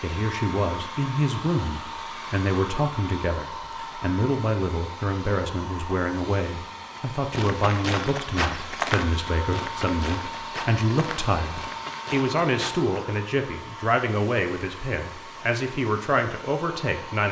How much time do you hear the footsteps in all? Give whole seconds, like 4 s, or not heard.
6 s.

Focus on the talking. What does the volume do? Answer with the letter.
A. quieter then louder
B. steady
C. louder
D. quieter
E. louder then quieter
B.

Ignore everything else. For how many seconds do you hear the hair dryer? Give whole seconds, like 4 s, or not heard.
17 s.